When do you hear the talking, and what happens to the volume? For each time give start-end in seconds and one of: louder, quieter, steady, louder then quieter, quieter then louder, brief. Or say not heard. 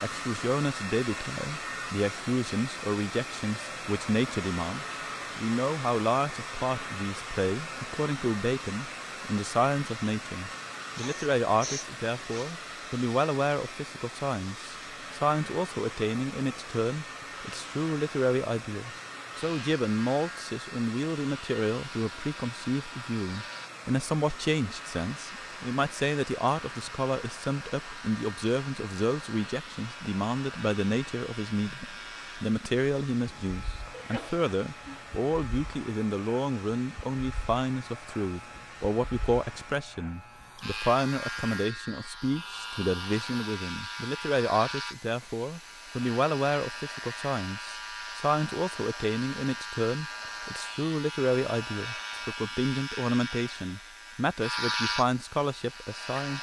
0.0-56.3 steady.